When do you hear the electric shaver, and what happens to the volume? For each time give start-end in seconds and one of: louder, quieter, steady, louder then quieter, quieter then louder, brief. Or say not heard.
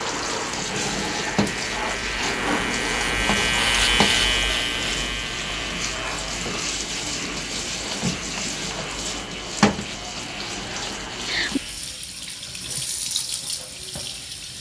0.0-11.9 louder then quieter.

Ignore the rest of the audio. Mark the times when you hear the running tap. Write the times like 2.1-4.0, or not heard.
0.0-14.5.